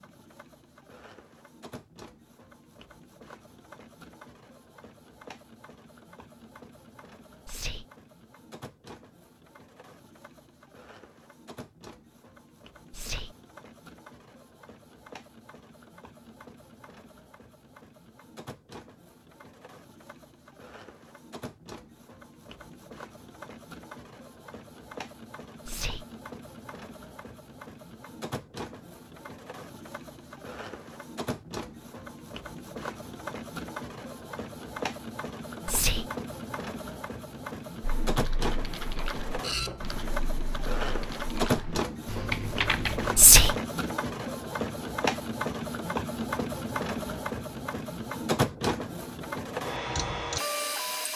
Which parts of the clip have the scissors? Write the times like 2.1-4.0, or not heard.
not heard.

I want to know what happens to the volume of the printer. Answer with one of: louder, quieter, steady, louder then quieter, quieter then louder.
louder.